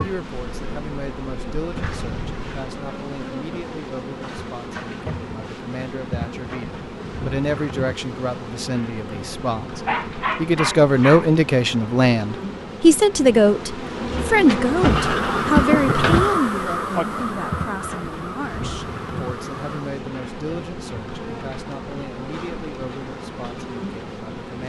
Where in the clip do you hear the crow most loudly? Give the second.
16 s.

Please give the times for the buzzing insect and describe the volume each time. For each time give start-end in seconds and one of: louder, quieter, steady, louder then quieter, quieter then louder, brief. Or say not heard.
0.0-24.6 louder then quieter.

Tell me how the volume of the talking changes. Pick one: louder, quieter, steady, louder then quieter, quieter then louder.
louder then quieter.